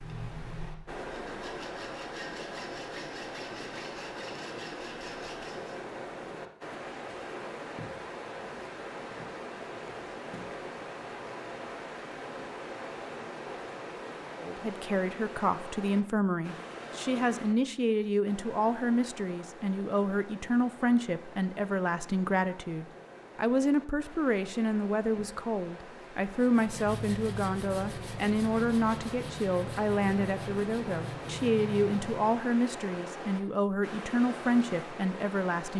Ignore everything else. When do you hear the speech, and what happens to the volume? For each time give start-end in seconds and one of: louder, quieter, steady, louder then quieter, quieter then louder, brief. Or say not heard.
14.3-35.7 steady.